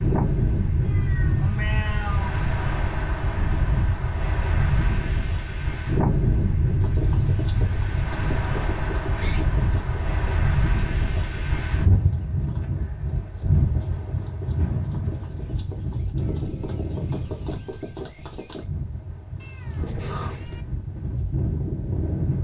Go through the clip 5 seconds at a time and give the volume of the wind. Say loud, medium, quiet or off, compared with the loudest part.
loud, loud, loud, medium, loud.